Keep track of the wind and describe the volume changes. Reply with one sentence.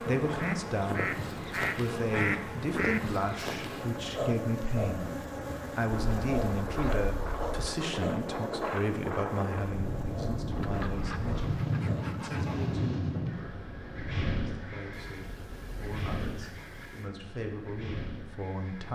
The volume of the wind goes up, then down.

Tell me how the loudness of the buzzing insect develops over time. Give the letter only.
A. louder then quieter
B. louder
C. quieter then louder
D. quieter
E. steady
D.